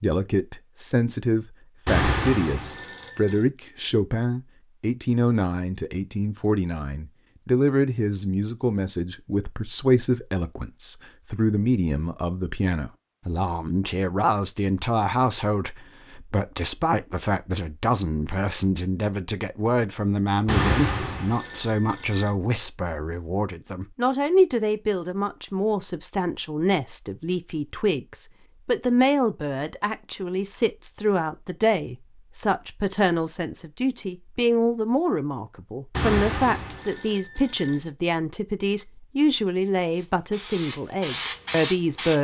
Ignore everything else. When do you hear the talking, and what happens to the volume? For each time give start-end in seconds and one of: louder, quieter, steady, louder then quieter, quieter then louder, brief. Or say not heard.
0.0-42.1 steady.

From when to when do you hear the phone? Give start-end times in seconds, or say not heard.
1.9-3.5, 20.4-22.4, 35.9-37.8.